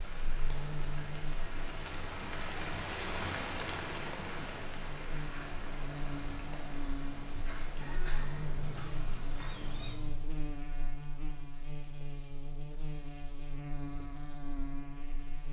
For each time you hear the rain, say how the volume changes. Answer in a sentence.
The rain can be heard from 0.0 to 9.9 s, getting louder then quieter.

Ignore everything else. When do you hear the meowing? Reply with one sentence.
You can hear the meowing from 8.8 to 10.3 s.